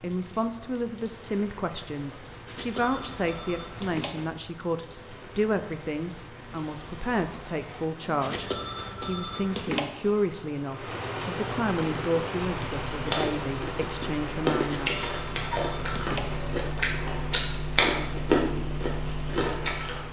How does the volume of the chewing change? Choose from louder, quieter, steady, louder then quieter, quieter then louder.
louder.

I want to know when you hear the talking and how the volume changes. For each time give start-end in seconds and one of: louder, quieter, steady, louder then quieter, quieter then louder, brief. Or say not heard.
0.0-14.9 steady.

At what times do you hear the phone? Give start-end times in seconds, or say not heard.
2.5-4.3, 8.2-9.9, 14.6-16.4.